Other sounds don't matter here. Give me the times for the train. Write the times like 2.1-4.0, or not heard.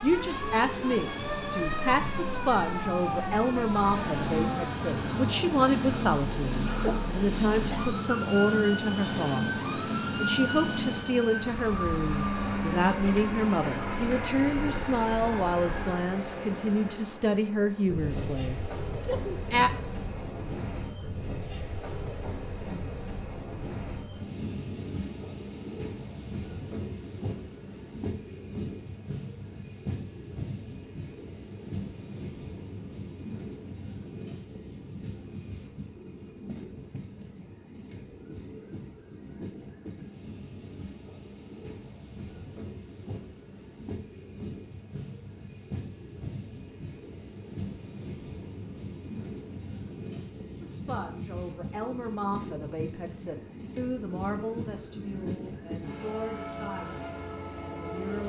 0.0-58.2.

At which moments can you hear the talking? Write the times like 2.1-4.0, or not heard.
0.0-19.7, 50.6-58.2.